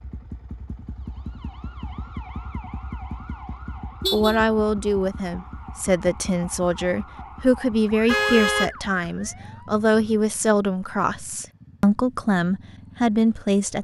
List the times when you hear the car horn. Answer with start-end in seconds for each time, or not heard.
4.0-4.5, 8.1-8.7.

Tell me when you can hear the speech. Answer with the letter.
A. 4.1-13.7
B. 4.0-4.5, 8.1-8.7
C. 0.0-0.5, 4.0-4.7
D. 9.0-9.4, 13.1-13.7
A.